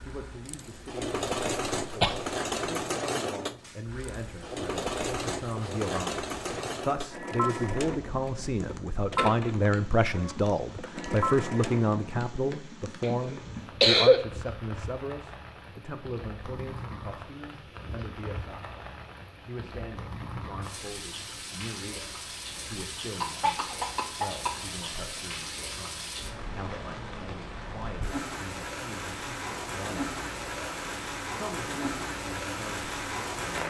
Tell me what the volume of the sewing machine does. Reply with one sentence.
The loudness of the sewing machine stays about the same.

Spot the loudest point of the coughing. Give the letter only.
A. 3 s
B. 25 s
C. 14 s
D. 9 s
C.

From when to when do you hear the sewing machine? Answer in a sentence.
You can hear the sewing machine from 0.0 to 12.6 s.